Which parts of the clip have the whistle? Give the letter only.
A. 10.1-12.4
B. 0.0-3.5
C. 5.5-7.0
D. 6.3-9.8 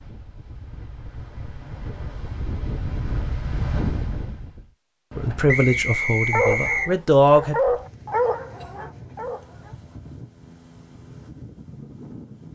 C.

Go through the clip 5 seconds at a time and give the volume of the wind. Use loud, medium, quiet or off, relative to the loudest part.
loud, medium, medium.